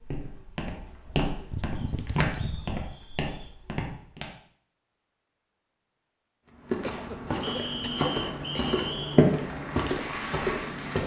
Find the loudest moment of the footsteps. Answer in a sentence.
The volume of the footsteps peaks at 9 seconds.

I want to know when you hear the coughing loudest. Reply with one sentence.
The volume of the coughing peaks at 2 seconds.